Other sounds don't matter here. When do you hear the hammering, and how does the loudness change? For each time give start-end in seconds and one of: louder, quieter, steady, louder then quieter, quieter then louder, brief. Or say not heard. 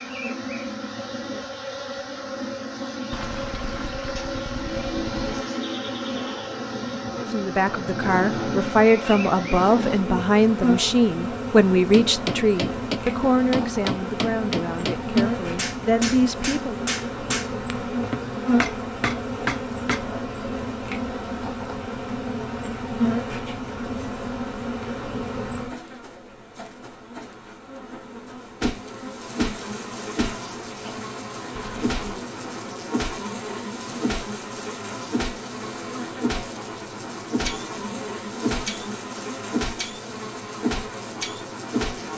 11.9-20.2 steady.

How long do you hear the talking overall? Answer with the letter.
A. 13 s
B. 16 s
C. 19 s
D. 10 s
D.